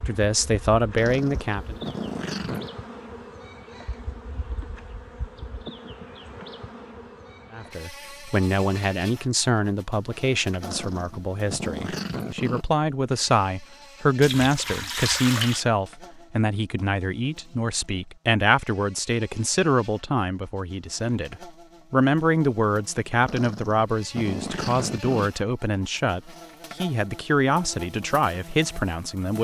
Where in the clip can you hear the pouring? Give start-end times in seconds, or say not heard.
14.2-15.7.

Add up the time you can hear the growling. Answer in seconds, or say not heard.
6 s.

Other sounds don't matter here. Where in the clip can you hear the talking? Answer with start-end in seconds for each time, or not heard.
0.1-1.8, 7.5-29.3.